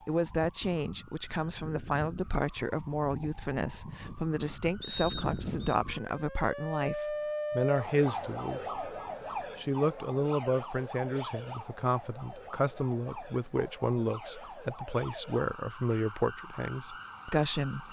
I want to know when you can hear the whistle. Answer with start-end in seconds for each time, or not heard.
4.8-5.8.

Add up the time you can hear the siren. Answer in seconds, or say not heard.
18 s.